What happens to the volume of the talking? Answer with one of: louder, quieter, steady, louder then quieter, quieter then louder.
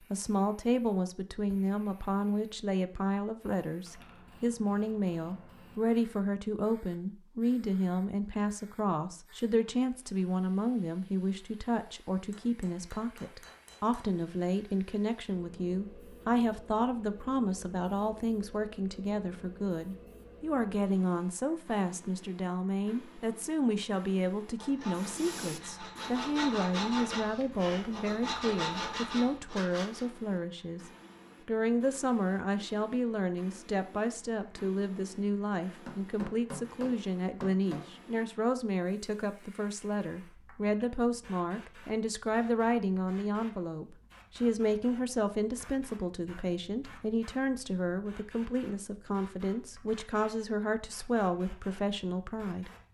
steady.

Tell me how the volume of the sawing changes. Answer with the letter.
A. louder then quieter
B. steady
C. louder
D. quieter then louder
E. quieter
C.